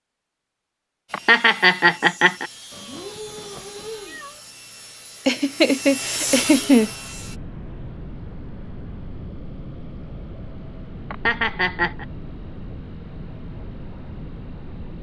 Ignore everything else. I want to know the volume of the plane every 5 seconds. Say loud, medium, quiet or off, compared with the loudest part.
off, loud, loud.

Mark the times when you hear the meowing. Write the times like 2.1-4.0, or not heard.
2.7-4.4.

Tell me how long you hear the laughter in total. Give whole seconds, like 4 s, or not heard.
4 s.